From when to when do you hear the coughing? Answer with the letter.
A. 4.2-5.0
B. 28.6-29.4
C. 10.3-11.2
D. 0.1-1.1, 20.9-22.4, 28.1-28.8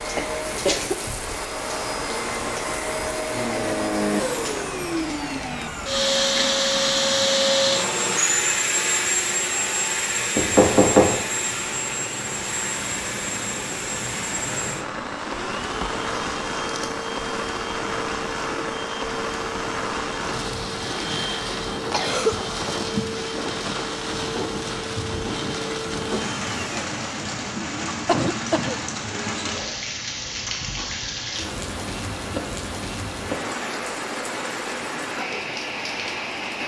D.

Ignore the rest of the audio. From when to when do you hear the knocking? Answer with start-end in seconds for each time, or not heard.
10.3-11.2.